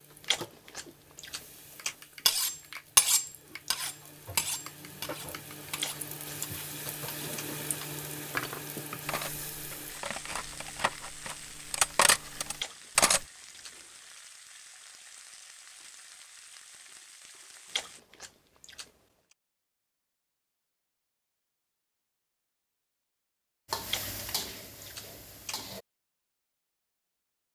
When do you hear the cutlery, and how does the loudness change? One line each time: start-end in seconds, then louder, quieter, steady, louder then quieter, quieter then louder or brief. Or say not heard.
2.2-13.2 quieter then louder.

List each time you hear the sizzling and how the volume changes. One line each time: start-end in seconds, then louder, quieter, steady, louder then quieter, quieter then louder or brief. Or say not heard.
0.0-18.0 louder then quieter
23.6-25.9 brief.